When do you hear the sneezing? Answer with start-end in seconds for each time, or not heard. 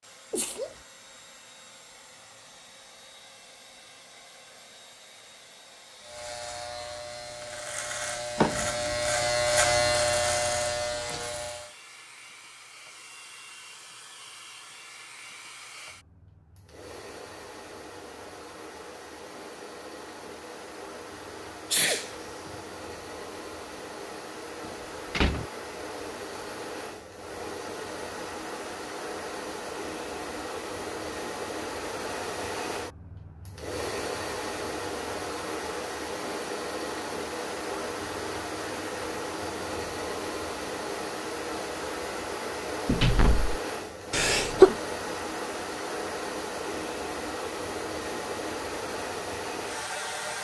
0.3-0.8, 21.7-22.6, 44.1-44.8.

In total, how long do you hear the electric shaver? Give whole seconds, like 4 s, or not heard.
6 s.